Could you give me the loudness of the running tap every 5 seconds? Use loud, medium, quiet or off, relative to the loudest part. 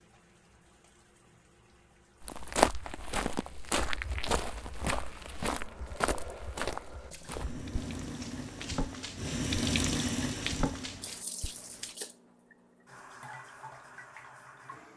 quiet, loud, loud.